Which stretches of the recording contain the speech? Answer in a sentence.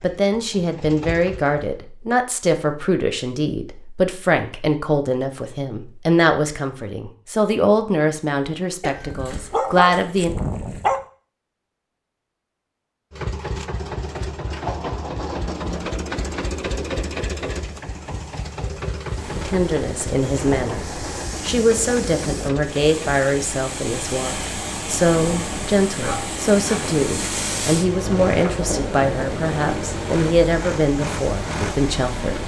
The speech can be heard from 0.0 to 10.3 s and from 19.4 to 32.4 s.